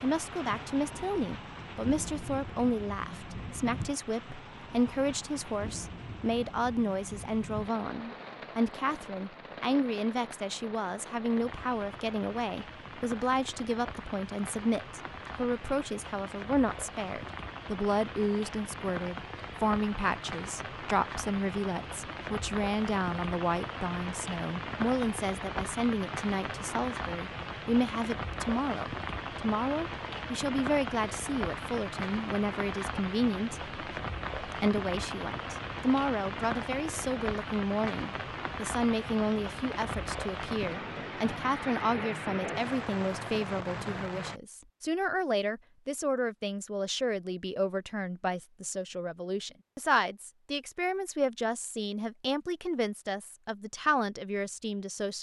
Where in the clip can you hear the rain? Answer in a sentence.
The rain can be heard from 0.0 to 44.4 s.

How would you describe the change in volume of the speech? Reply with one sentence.
The volume of the speech stays about the same.